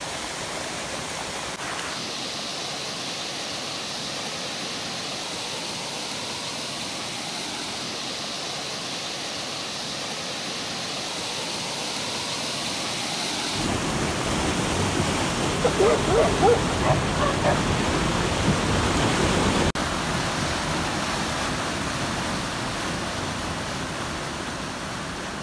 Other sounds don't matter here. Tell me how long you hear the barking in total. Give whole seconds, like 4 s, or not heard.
2 s.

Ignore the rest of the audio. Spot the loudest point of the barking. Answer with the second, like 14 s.
16 s.